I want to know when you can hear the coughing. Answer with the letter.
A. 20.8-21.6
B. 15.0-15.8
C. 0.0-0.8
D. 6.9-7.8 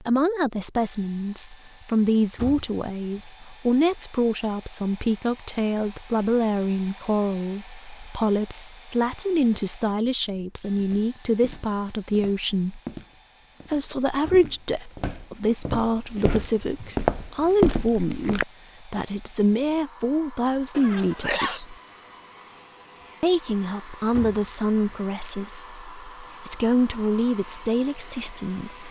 A.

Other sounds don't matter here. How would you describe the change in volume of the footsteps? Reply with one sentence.
The loudness of the footsteps goes up.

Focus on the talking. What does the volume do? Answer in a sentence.
The volume of the talking stays about the same.